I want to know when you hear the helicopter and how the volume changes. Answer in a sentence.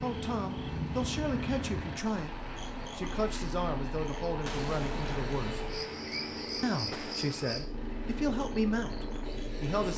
The helicopter can be heard from 0.0 to 9.9 s, at a steady volume.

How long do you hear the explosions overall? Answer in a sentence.
You can hear the explosions for 3 seconds altogether.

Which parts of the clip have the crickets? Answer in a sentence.
You can hear the crickets from 0.0 to 9.9 s.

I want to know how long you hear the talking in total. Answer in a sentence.
The talking can be heard for 9 seconds in total.